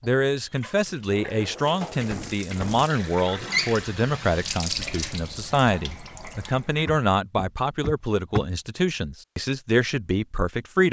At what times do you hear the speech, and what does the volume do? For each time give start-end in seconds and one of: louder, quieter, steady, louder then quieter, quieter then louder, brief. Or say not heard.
0.0-10.8 steady.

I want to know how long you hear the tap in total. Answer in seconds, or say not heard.
7 s.